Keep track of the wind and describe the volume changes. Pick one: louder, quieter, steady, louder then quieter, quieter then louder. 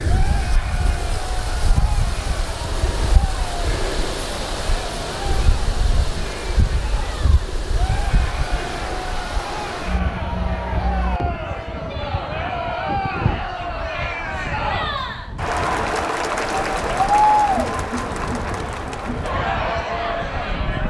quieter.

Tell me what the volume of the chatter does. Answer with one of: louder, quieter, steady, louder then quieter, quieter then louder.
louder.